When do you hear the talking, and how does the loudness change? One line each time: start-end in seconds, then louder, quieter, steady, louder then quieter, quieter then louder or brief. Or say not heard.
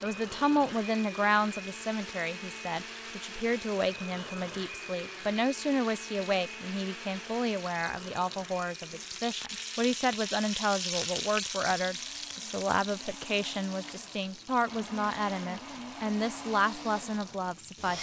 0.0-17.9 steady.